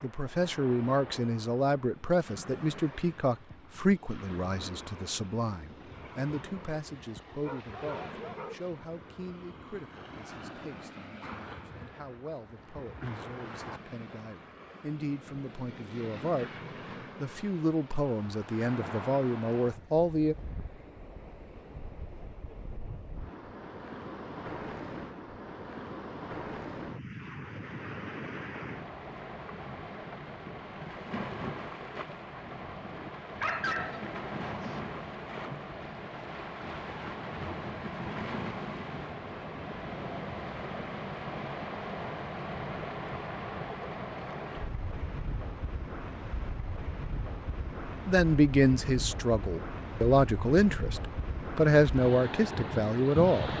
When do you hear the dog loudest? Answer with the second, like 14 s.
34 s.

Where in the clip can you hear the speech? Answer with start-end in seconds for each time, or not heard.
0.0-16.5, 17.2-20.4, 48.0-53.5.